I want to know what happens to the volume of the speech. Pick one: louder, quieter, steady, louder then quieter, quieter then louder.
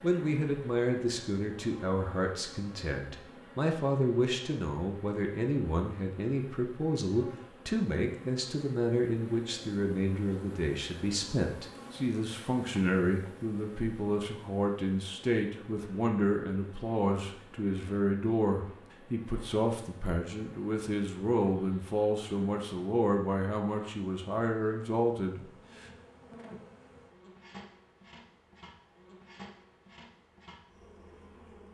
steady.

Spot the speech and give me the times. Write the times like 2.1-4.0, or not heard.
0.0-25.9.